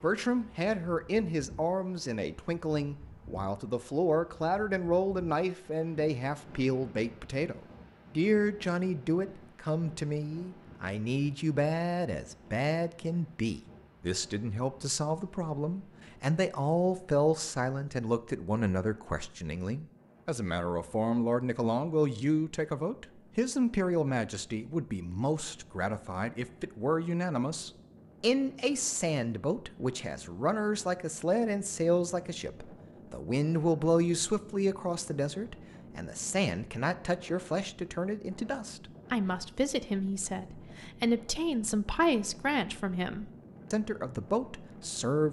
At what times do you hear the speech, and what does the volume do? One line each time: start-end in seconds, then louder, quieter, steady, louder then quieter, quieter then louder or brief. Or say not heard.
0.0-45.2 steady.